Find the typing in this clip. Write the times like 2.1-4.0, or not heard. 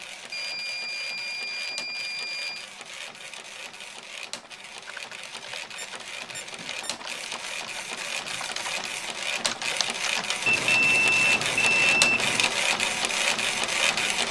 4.8-10.6.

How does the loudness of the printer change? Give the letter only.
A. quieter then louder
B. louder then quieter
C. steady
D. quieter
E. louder
E.